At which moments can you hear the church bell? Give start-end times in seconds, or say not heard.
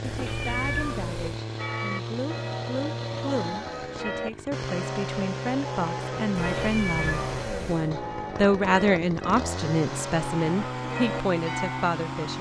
1.6-11.9.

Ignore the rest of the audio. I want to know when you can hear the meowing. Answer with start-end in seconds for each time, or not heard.
0.0-1.4, 6.4-7.9.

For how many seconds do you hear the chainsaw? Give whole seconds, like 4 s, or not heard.
12 s.